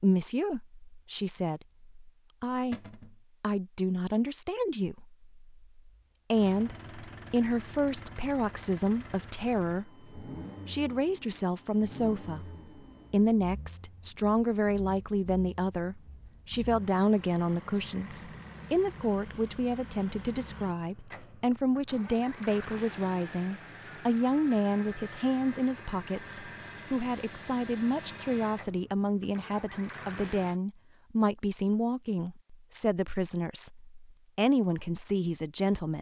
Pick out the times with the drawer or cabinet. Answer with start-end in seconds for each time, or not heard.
2.7-3.2.